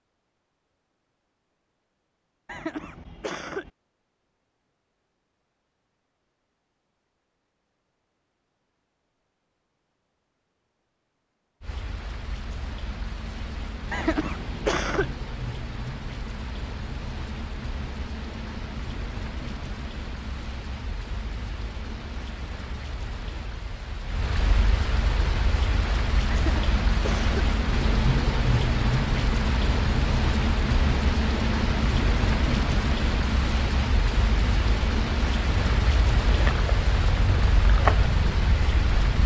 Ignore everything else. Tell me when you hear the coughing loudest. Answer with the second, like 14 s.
15 s.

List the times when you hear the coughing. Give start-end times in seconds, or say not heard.
2.5-3.7, 13.9-15.2, 26.2-27.5.